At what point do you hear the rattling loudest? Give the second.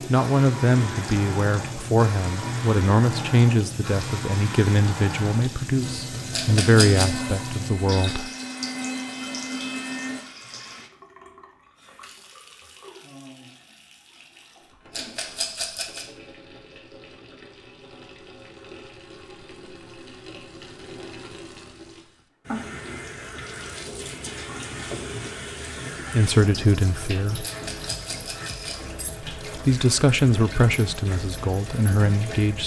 7 s.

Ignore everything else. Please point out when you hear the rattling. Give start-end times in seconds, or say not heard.
6.3-7.2, 14.9-16.1, 27.4-28.8.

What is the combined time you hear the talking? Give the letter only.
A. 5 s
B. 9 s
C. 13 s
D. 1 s
C.